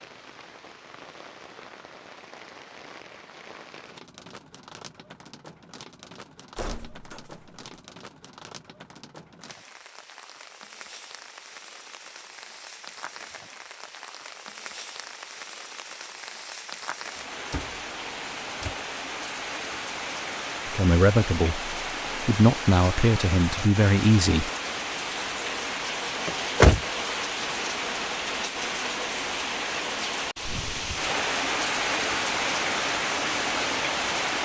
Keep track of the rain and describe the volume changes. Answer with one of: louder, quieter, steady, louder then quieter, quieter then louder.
louder.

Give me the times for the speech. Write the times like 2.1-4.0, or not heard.
20.6-24.5.